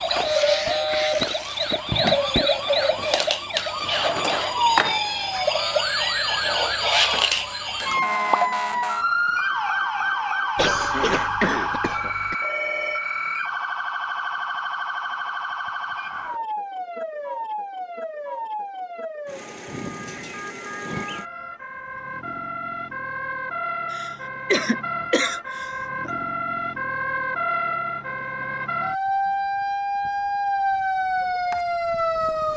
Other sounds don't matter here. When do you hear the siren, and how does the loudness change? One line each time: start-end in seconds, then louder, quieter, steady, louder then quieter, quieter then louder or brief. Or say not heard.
0.0-32.5 quieter then louder.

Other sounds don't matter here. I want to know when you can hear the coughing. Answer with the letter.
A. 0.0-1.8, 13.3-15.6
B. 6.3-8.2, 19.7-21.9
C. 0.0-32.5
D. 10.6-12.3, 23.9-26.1
D.